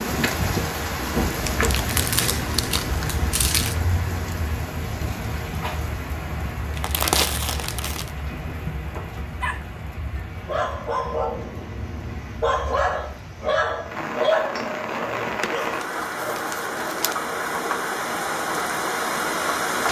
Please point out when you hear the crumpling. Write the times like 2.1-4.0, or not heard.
1.4-3.8, 6.8-8.1, 15.1-17.1.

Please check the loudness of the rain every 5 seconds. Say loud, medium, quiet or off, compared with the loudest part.
loud, medium, medium, loud.